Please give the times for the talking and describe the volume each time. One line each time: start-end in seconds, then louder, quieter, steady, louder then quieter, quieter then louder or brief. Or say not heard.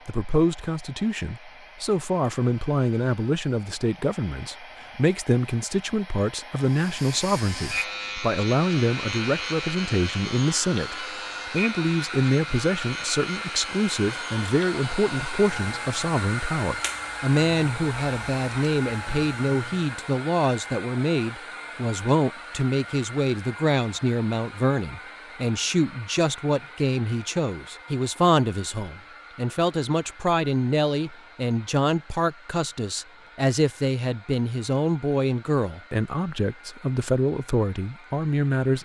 0.1-38.8 steady.